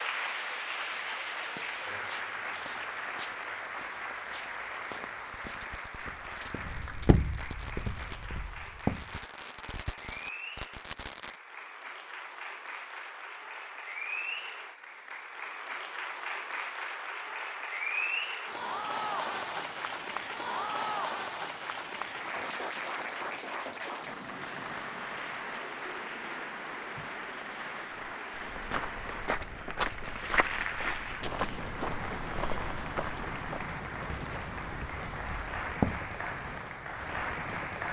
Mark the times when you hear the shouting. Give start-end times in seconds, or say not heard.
not heard.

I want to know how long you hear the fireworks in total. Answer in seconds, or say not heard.
6 s.